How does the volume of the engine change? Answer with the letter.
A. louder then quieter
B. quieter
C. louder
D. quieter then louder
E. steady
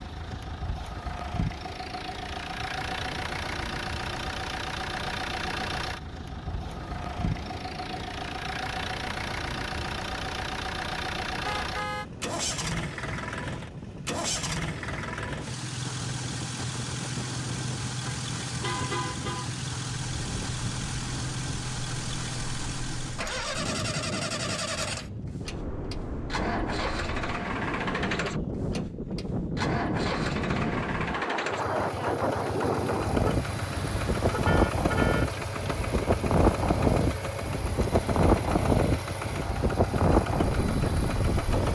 E.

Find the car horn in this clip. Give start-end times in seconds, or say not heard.
11.4-12.1, 18.1-19.5, 33.2-35.2.